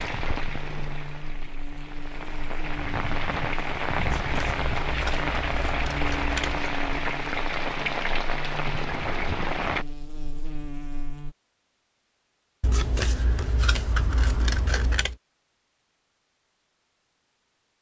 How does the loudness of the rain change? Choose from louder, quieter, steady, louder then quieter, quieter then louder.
louder.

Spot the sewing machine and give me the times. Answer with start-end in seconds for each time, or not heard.
not heard.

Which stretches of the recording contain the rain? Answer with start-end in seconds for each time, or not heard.
0.0-9.8.